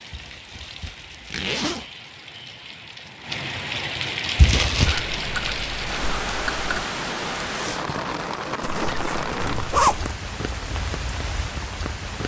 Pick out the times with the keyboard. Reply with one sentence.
You can hear the keyboard from 4.8 to 6.8 s.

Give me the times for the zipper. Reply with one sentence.
The zipper can be heard from 0.1 to 1.9 s, from 4.3 to 5.0 s and from 8.6 to 10.2 s.